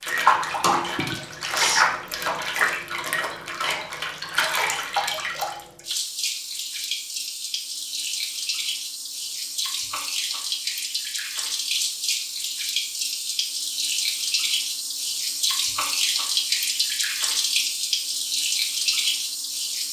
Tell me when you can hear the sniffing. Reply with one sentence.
You can hear the sniffing from 0.9 to 1.9 s.